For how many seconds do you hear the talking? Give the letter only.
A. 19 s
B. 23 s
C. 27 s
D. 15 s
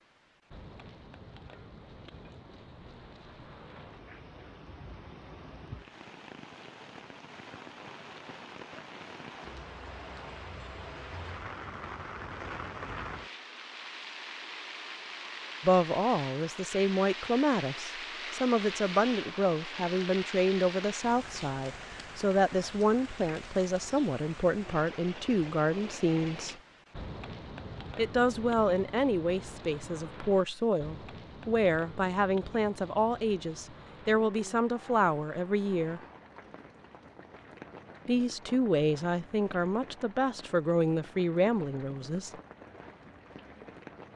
B.